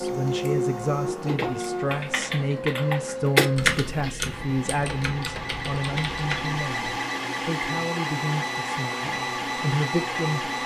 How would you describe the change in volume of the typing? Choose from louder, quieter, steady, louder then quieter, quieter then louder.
louder then quieter.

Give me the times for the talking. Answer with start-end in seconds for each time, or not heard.
0.0-10.5.